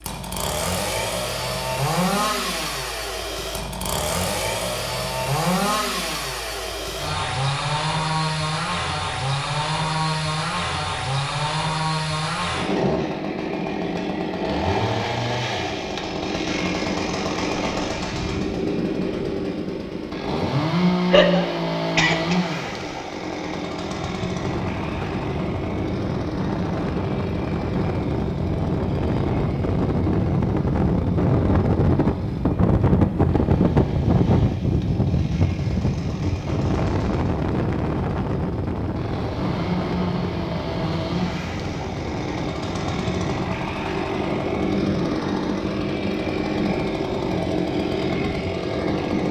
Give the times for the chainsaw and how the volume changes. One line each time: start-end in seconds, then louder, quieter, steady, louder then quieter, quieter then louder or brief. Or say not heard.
0.0-49.2 quieter then louder.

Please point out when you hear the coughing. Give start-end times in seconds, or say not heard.
21.1-22.4.